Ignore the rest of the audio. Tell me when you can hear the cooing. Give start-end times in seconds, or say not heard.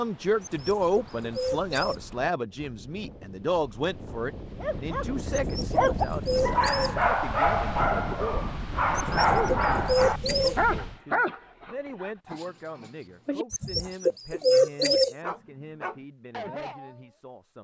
0.4-2.0, 5.3-7.0, 8.9-10.6, 13.5-15.2.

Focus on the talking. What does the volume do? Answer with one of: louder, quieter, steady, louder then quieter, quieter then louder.
quieter.